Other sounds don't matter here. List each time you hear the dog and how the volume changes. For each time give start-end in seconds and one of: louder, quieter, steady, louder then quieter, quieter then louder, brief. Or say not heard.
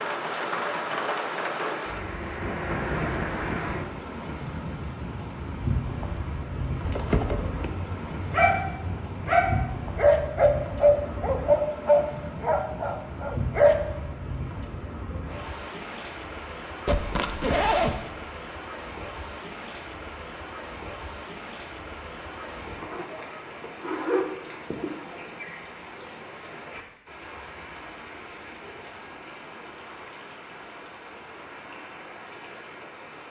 7.7-13.8 louder then quieter.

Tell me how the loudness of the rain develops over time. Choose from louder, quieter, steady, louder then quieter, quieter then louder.
quieter.